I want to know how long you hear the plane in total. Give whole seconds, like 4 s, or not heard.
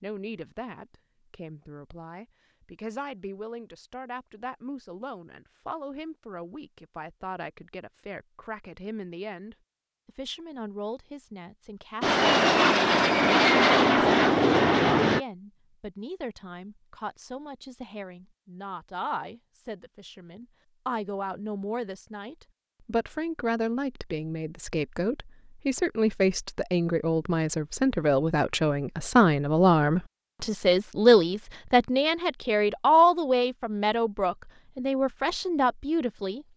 3 s.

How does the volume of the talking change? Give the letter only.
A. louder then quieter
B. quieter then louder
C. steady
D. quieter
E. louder
E.